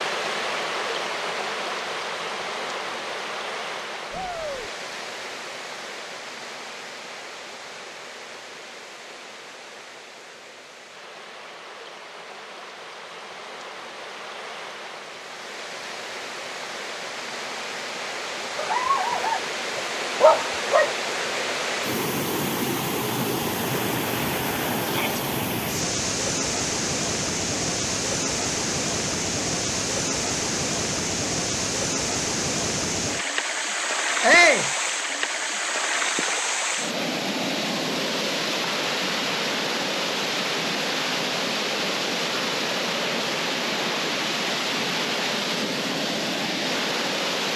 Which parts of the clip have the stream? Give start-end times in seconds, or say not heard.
0.0-47.5.